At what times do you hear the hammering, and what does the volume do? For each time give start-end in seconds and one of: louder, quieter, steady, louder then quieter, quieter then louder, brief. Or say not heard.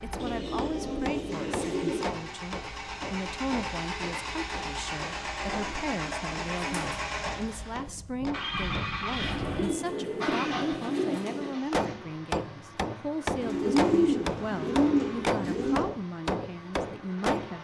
0.1-8.7 quieter
11.7-17.5 steady.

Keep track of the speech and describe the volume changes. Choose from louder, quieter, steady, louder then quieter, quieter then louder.
steady.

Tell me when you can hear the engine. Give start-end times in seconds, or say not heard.
0.0-17.5.